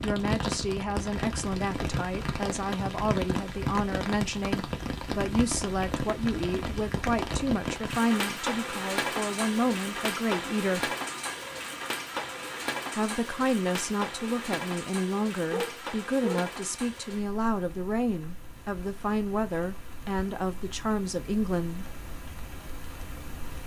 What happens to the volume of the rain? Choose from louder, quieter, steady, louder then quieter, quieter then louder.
quieter.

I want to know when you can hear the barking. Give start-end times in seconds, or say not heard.
15.5-17.0.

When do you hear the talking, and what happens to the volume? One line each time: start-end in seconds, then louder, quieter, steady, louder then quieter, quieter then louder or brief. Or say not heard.
0.0-10.9 steady
12.9-21.9 steady.